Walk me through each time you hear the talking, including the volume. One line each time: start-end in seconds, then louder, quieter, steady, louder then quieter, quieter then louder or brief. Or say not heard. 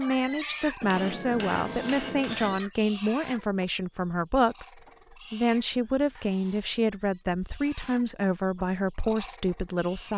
0.0-10.1 steady.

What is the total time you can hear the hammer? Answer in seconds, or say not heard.
2 s.